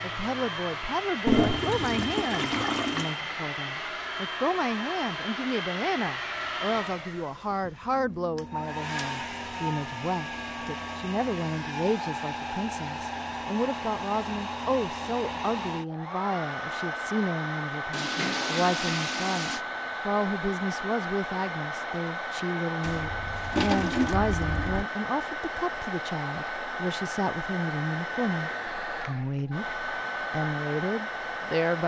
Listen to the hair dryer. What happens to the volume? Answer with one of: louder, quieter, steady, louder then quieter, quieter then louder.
steady.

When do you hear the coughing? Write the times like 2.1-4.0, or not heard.
not heard.